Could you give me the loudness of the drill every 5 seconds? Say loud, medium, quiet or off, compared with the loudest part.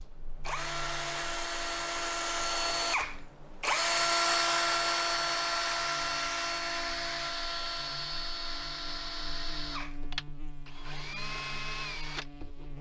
loud, loud, medium.